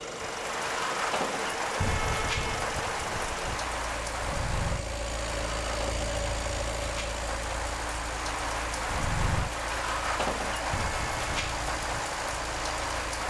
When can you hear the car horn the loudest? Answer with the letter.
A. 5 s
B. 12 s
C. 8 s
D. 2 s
D.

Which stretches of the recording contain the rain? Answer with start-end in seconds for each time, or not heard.
0.0-13.2.